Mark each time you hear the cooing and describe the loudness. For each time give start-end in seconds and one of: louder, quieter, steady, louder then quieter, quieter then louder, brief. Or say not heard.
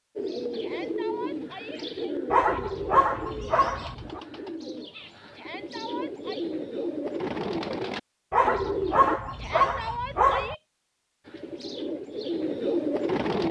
0.1-9.2 quieter then louder
11.2-13.4 brief.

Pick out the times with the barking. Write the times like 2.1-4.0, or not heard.
2.3-4.2, 8.3-10.6.